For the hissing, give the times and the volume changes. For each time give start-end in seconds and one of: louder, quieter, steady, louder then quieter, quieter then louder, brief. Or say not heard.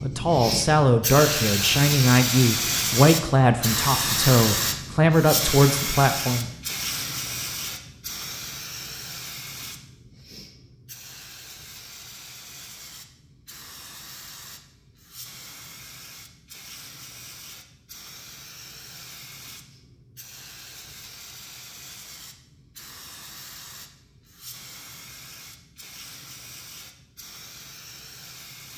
0.0-28.7 quieter.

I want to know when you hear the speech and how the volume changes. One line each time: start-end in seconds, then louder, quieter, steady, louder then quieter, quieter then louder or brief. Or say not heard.
0.0-6.5 steady.